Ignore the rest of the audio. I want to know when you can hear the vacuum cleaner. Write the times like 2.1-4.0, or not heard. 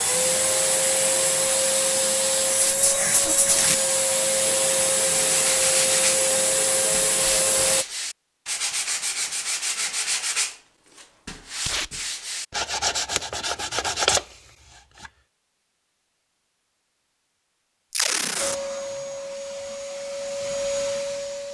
0.0-7.8, 18.4-21.4.